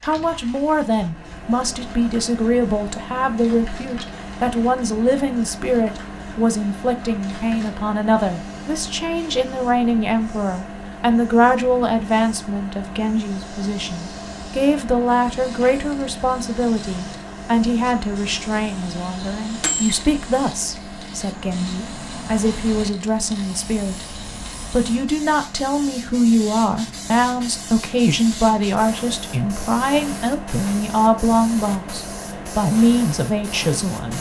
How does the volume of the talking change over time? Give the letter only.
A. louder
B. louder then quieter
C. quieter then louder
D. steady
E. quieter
D.